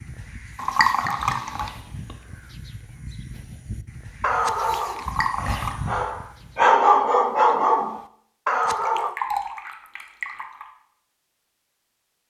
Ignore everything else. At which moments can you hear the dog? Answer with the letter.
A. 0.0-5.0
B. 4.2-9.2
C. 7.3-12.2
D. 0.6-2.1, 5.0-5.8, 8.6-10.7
B.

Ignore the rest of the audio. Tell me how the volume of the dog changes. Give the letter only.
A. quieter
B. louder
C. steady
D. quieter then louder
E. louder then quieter
E.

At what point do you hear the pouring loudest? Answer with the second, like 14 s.
1 s.